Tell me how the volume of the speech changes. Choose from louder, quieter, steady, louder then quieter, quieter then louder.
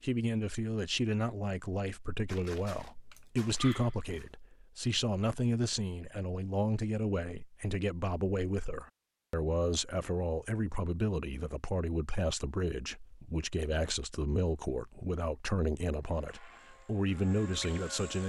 steady.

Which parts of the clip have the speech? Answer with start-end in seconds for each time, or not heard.
0.0-18.2.